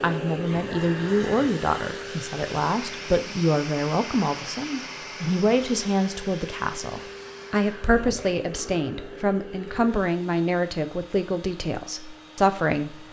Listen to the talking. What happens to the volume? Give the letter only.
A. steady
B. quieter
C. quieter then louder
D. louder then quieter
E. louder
A.